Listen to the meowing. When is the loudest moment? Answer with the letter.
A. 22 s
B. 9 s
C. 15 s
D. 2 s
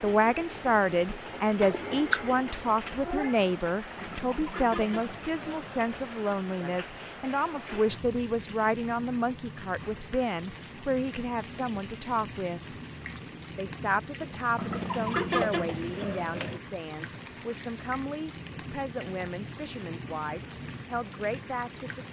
D.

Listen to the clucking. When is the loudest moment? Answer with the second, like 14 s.
15 s.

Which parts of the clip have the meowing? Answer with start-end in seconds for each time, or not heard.
1.6-3.4.